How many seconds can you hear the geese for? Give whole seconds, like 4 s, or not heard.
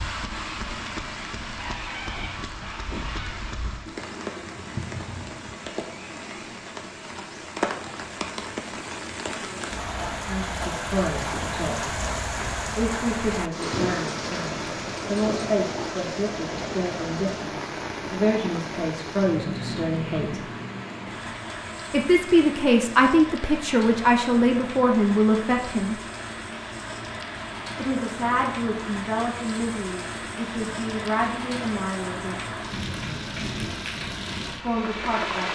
2 s.